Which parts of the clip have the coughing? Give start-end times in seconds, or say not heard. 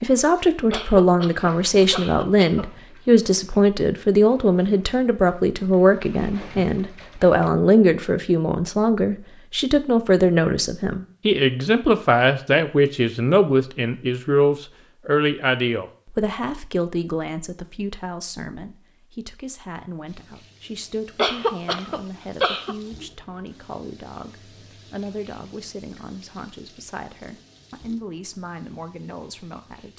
0.7-2.6, 21.1-22.8.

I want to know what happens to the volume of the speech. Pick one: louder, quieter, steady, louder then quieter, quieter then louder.
quieter.